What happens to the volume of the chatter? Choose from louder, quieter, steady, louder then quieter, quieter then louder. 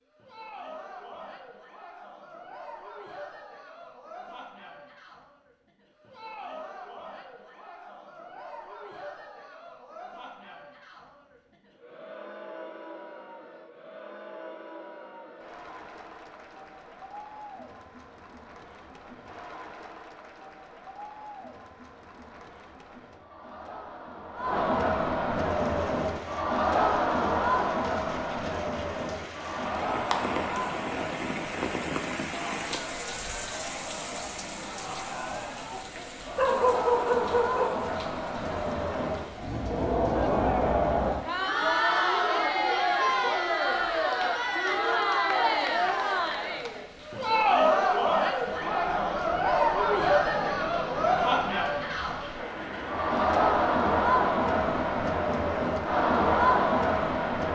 louder.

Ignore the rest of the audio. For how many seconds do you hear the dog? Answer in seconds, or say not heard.
2 s.